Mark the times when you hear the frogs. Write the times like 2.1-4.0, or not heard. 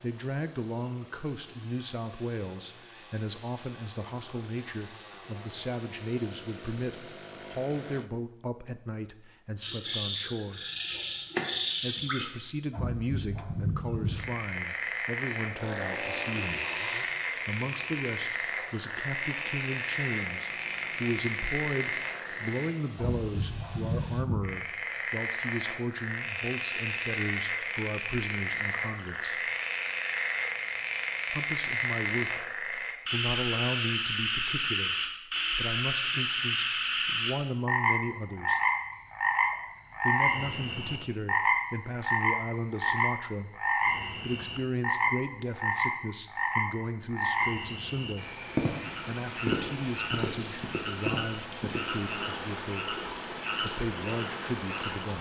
9.6-55.1.